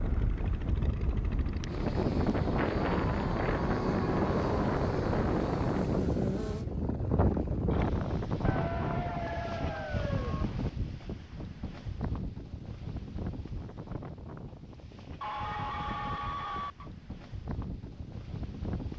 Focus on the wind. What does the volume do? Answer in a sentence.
The loudness of the wind goes down.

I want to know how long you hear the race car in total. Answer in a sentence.
The race car can be heard for 5 seconds in total.